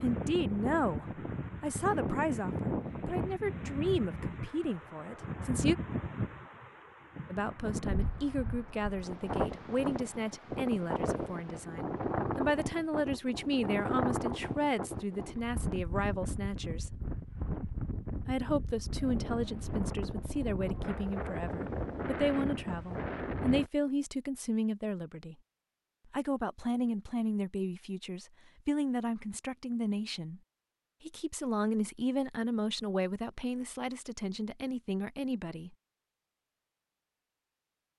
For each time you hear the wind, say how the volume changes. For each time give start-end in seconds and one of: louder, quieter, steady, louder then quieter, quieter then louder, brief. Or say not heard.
0.0-23.7 steady.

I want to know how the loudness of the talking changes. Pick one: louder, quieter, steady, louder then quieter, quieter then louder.
steady.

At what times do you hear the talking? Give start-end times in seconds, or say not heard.
0.0-5.8, 7.3-16.9, 18.2-25.4, 26.1-30.4, 31.1-35.8.